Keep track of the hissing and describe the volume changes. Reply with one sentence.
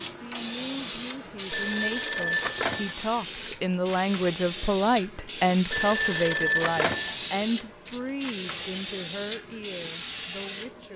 The volume of the hissing stays about the same.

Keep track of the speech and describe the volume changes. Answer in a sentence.
The loudness of the speech goes up, then down.